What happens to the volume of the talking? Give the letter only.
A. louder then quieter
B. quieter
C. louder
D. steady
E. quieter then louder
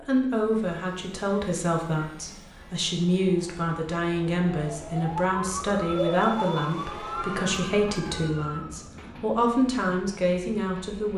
D.